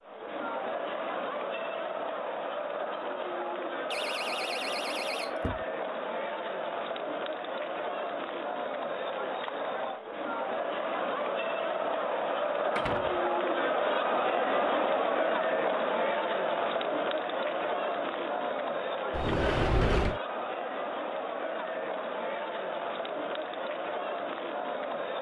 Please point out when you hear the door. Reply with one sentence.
The door can be heard from 3.9 to 5.7 s, from 12.8 to 13.2 s and from 19.1 to 20.2 s.